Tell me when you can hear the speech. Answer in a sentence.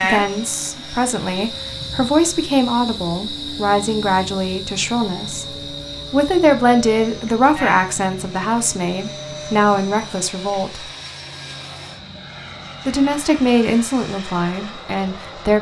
The speech can be heard from 0.0 to 5.5 s, from 6.1 to 10.8 s and from 12.8 to 15.5 s.